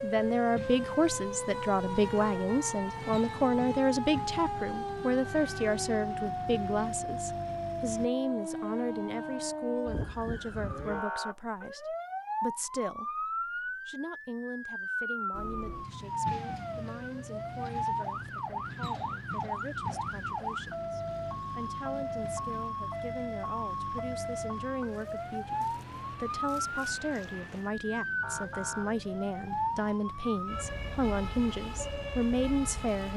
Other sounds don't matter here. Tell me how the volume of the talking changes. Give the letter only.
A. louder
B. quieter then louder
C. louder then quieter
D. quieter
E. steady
B.